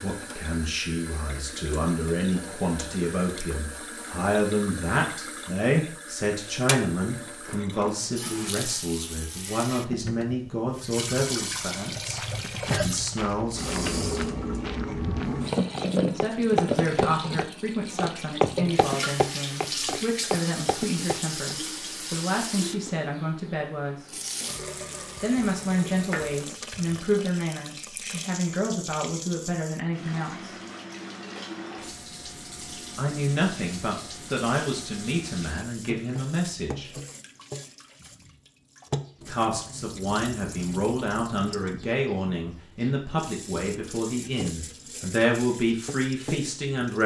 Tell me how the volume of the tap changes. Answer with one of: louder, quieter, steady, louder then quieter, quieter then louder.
louder then quieter.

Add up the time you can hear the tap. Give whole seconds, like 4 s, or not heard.
47 s.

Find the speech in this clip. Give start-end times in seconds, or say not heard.
0.0-14.0, 16.1-24.1, 25.2-30.5, 33.0-36.9, 39.2-47.0.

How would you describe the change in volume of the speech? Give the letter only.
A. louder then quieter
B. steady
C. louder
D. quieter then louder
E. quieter
B.